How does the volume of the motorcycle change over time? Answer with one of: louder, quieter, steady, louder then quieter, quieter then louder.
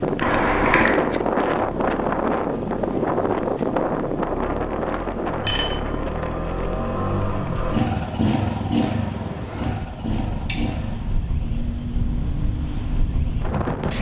louder then quieter.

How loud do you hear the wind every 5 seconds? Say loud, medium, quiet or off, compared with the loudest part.
loud, medium, medium.